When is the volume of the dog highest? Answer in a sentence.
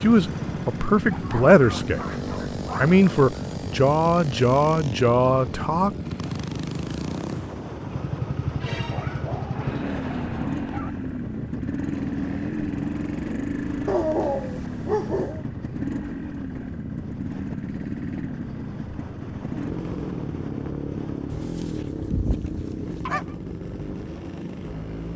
The loudest moment of the dog is at 14 seconds.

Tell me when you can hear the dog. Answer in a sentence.
You can hear the dog from 1.1 to 3.0 s, from 8.9 to 10.9 s, from 13.8 to 15.4 s and from 21.3 to 23.4 s.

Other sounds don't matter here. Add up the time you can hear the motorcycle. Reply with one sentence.
You can hear the motorcycle for 25 seconds altogether.